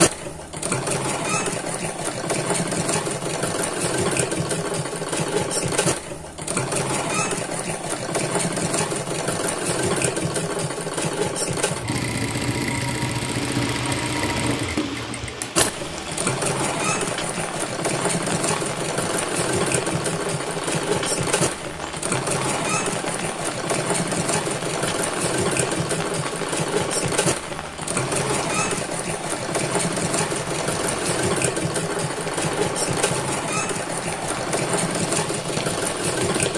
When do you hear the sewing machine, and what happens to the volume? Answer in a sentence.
You can hear the sewing machine from 0.0 to 36.5 s, at a steady volume.